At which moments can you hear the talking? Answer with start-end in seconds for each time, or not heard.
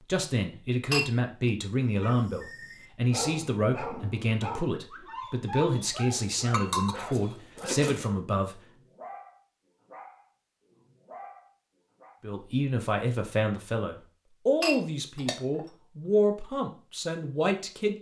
0.0-8.7, 12.2-17.9.